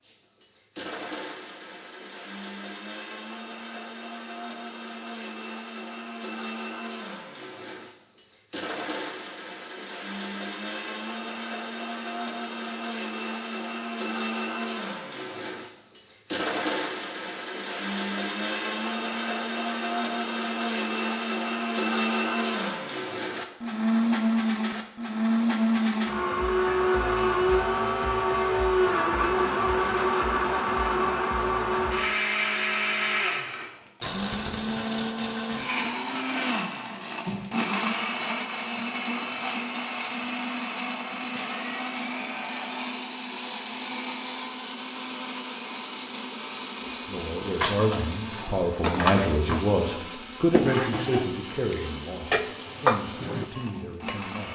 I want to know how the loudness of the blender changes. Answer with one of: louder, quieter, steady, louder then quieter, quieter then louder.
louder then quieter.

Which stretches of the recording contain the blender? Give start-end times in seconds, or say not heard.
0.0-54.4.